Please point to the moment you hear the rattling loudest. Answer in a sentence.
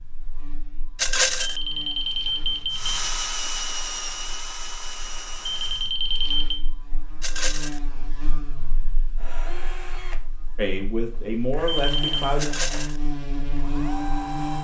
The loudest moment of the rattling is at 1 second.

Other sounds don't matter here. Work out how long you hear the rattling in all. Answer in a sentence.
You can hear the rattling for 2 seconds altogether.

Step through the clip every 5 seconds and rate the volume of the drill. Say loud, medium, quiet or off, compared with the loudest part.
loud, medium, medium.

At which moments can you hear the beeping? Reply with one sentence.
You can hear the beeping from 1.4 to 3.0 s, from 5.5 to 6.6 s and from 11.7 to 12.3 s.